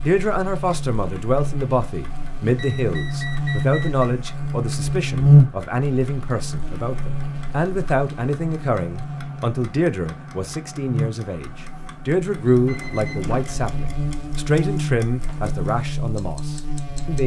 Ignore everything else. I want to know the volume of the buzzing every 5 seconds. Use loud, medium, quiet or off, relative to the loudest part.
medium, loud, medium, medium.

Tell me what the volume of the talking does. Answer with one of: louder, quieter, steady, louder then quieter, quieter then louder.
steady.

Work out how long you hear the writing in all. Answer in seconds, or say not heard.
not heard.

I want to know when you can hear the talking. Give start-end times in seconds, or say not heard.
0.0-17.2.